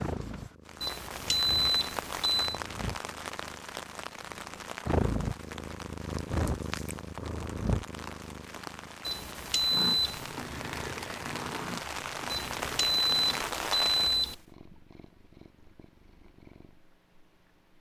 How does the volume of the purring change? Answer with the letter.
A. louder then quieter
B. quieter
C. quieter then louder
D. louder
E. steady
A.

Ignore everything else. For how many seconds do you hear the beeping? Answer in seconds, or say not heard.
5 s.